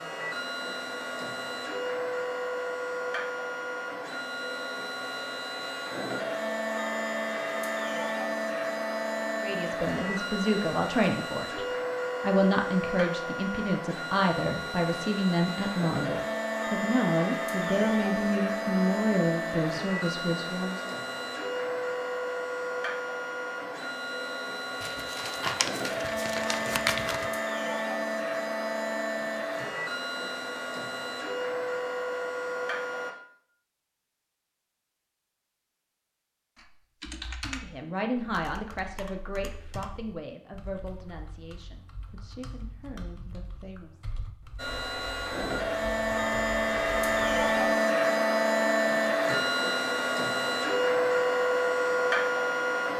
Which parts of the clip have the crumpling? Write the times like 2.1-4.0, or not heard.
24.8-27.3.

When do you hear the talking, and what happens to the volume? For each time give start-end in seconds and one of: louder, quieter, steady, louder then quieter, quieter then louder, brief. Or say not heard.
9.3-20.9 steady
37.5-44.0 quieter.